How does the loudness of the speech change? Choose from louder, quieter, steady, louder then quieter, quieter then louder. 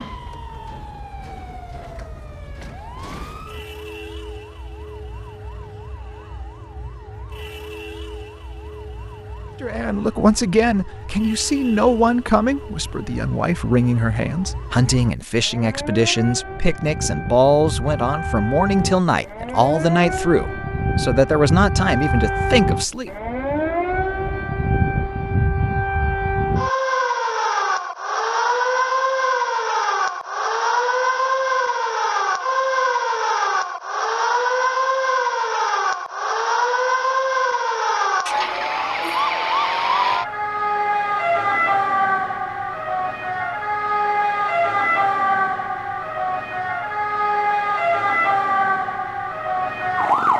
steady.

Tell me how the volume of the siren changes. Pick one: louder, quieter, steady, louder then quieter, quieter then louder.
louder.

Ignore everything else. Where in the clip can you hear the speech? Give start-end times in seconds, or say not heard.
9.6-23.1.